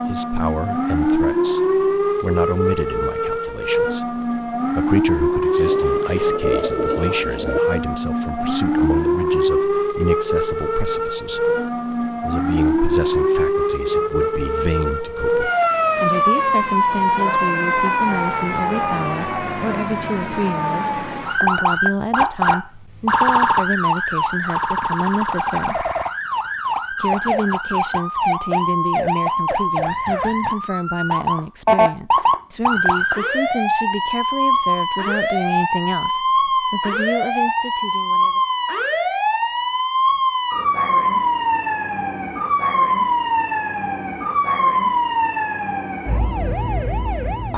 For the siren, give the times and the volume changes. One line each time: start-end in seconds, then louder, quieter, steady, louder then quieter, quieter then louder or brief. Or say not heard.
0.0-47.5 steady.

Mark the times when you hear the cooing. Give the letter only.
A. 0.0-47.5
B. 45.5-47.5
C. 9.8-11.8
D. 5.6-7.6
D.